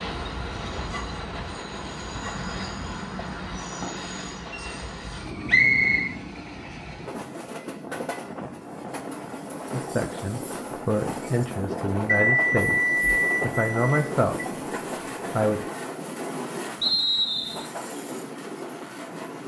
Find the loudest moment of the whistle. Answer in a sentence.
The volume of the whistle peaks at 6 seconds.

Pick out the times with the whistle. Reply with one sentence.
The whistle can be heard from 5.5 to 6.2 s and from 16.8 to 17.6 s.